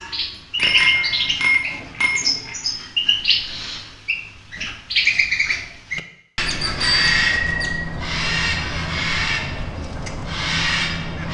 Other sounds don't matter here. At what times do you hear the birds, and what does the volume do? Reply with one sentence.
The birds can be heard from 0.0 to 11.2 s, at a steady volume.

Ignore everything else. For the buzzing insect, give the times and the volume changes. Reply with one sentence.
You can't hear the buzzing insect here.